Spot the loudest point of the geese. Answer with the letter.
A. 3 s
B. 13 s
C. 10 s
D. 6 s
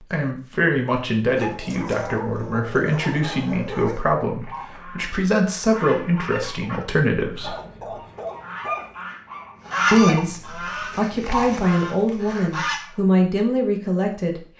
C.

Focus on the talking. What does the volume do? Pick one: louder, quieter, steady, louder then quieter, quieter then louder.
steady.